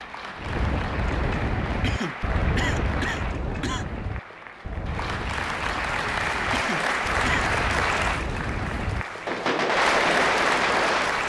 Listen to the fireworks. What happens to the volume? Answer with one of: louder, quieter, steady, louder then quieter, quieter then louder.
quieter then louder.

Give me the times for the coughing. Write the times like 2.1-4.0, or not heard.
1.8-3.9, 6.5-7.5.